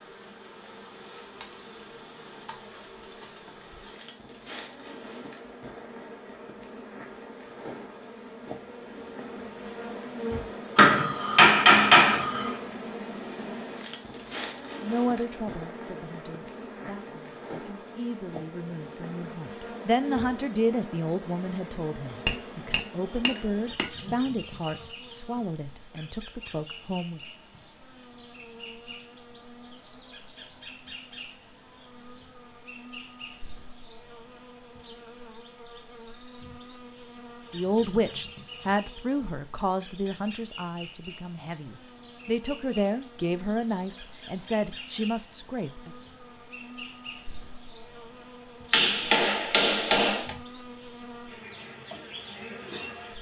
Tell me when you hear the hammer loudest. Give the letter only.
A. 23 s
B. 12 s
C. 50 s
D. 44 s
B.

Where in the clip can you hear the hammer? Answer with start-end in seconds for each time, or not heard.
10.8-12.6, 22.2-23.9, 48.7-50.3.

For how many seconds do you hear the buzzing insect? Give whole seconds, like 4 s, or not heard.
53 s.